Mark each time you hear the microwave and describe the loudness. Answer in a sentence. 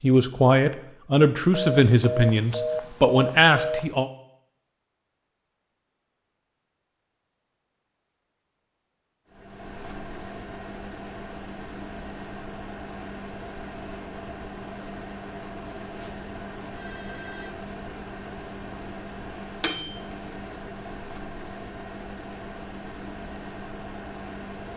The microwave can be heard from 9.3 to 24.7 s, getting louder then quieter.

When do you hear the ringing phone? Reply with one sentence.
You can hear the ringing phone from 1.5 to 3.9 s and from 15.9 to 17.6 s.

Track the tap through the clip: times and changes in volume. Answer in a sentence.
You can't hear the tap here.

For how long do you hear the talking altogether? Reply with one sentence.
You can hear the talking for 4 seconds altogether.